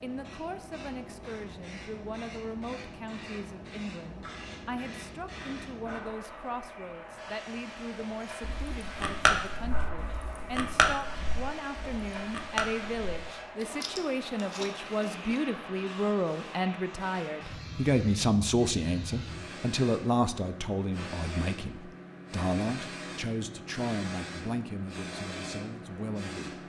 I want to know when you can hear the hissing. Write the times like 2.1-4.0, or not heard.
0.0-26.6.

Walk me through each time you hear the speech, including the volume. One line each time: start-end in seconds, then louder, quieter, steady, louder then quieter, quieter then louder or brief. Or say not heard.
0.0-26.6 louder then quieter.